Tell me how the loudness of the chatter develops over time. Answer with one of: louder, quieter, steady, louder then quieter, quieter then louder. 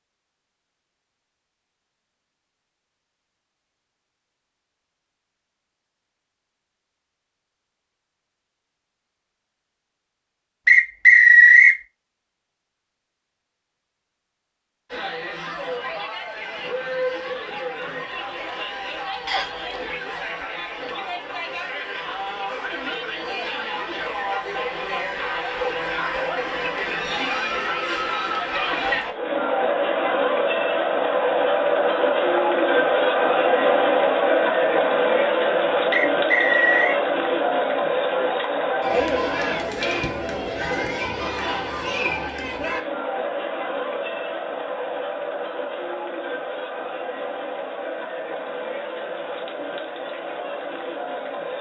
louder then quieter.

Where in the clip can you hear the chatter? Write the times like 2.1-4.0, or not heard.
14.9-51.5.